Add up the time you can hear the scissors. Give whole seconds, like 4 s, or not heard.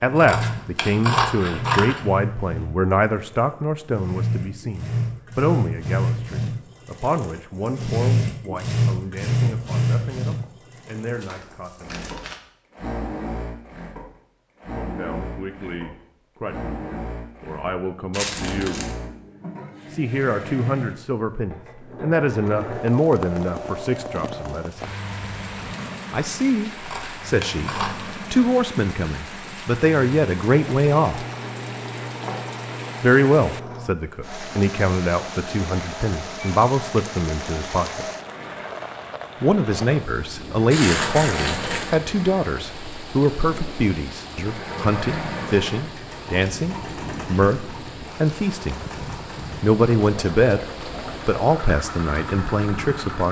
3 s.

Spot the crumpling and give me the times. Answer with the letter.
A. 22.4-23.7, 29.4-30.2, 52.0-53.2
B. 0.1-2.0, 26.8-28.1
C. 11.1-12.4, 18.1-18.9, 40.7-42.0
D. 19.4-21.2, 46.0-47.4
C.